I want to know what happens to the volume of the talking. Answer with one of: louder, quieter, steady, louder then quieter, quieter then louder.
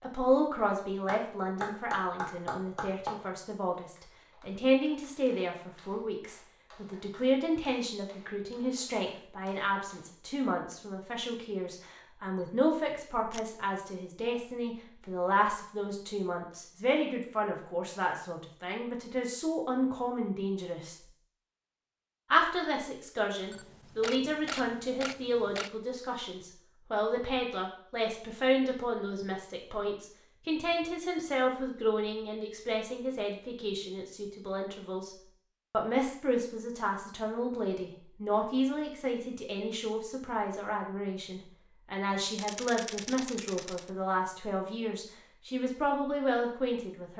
steady.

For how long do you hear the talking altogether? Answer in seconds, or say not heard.
46 s.